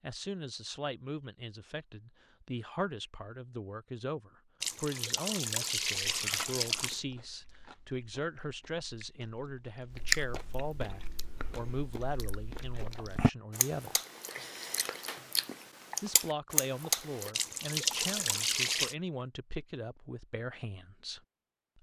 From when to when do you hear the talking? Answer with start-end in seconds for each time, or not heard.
0.0-14.0, 16.0-21.7.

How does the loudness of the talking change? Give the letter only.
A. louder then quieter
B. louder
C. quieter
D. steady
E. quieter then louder
D.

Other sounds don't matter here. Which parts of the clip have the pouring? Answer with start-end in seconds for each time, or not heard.
4.6-7.0, 17.3-18.9.